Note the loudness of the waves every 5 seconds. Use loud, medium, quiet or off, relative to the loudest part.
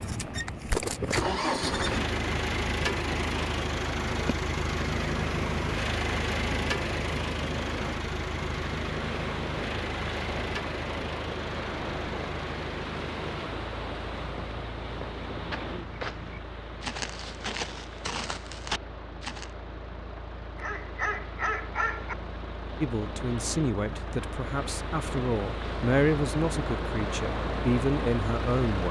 loud, loud, loud, medium, medium, loud.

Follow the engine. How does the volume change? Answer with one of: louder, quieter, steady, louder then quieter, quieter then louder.
quieter then louder.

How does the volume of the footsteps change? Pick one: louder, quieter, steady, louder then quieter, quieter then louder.
louder.